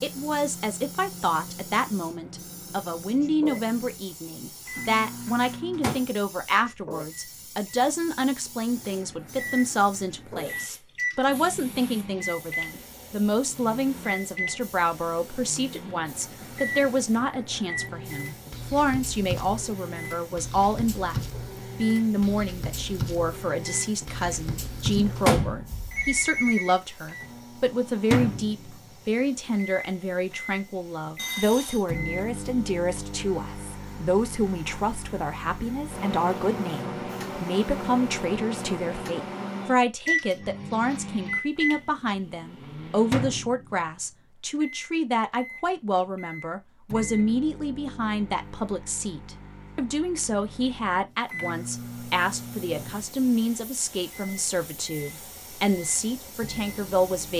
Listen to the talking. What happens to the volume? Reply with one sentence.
The loudness of the talking stays about the same.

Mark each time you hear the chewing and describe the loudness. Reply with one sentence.
The chewing can't be heard in this clip.